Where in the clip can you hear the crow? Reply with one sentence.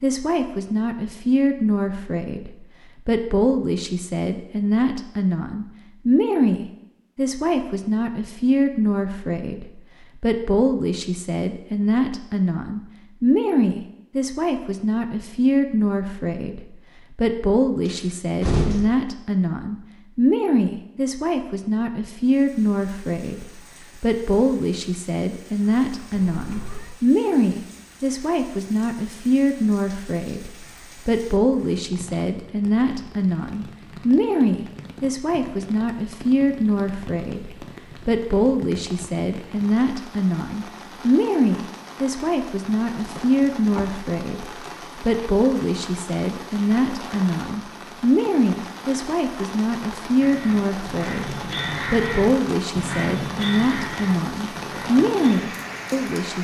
The crow can be heard from 50.2 to 56.0 s.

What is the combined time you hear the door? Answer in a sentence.
The door can be heard for 2 seconds in total.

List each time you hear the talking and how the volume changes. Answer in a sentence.
The talking can be heard from 0.0 to 56.3 s, at a steady volume.